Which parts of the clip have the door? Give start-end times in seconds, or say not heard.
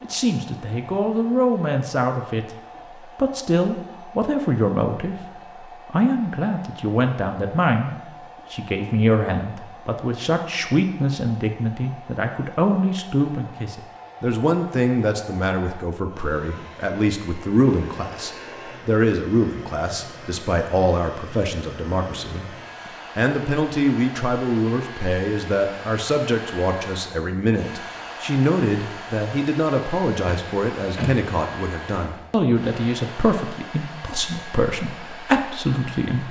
30.2-31.2.